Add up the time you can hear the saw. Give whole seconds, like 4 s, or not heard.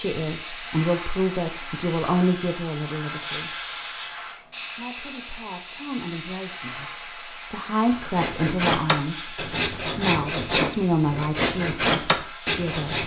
5 s.